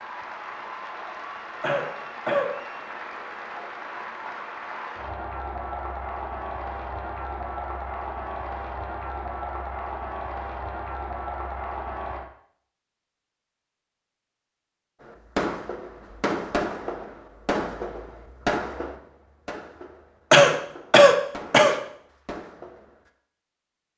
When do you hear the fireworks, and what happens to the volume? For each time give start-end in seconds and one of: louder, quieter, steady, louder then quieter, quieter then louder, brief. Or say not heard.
15.0-23.1 quieter.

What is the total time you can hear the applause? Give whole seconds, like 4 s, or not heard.
12 s.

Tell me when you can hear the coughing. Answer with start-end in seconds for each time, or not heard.
1.6-2.5, 20.3-21.8.